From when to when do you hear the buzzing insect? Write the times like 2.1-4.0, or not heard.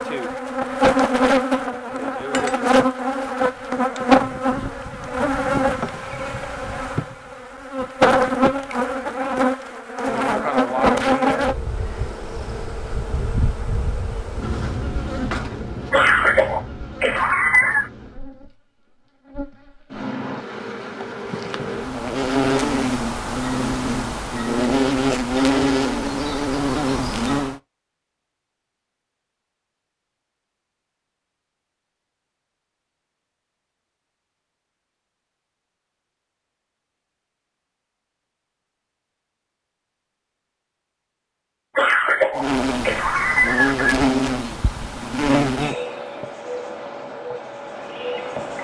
0.0-27.6, 42.4-48.5.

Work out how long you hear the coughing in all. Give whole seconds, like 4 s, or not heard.
4 s.